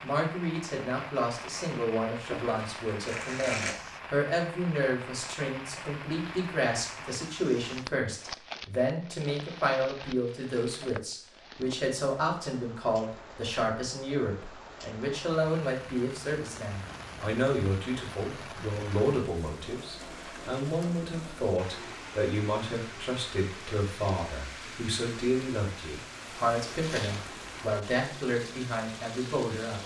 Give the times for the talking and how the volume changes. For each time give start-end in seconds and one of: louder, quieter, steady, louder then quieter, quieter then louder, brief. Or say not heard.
0.0-29.8 steady.